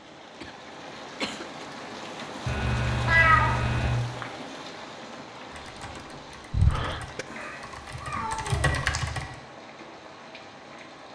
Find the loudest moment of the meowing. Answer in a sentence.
The volume of the meowing peaks at 3 seconds.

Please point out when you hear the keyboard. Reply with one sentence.
You can hear the keyboard from 5.5 to 9.4 s.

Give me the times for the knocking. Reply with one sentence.
The knocking can't be heard in this clip.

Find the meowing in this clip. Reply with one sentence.
You can hear the meowing from 2.5 to 4.0 s and from 7.3 to 9.0 s.